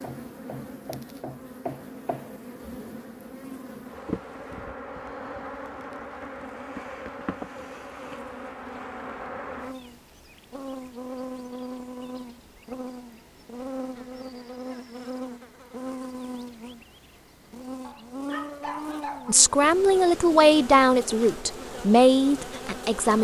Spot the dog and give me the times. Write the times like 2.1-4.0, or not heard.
17.8-19.4.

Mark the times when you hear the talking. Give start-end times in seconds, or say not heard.
19.2-23.1.